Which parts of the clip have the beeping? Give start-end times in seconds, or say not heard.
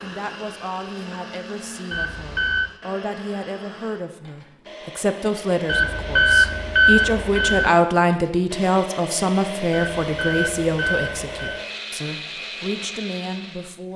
1.9-2.7, 5.7-7.7, 9.7-11.7.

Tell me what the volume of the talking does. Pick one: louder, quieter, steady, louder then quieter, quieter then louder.
louder then quieter.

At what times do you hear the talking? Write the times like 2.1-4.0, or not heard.
0.0-13.9.